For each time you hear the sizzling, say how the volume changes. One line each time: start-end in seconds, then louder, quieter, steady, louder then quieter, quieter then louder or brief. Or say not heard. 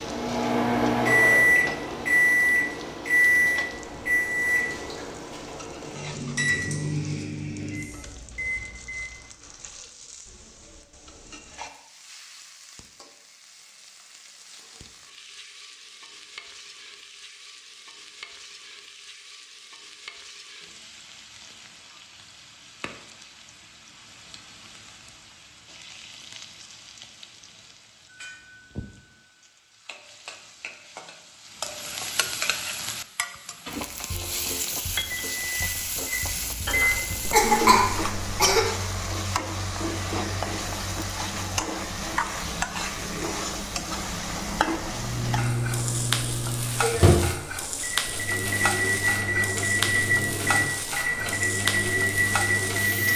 0.0-53.1 louder.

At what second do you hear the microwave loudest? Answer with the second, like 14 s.
1 s.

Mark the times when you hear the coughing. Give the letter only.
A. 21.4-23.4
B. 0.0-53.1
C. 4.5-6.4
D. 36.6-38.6
D.